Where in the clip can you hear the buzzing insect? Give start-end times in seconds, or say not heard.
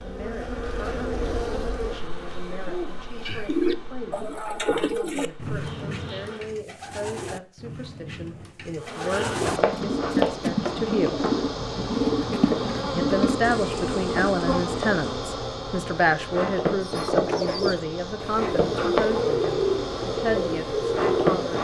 0.0-6.6, 8.8-21.5.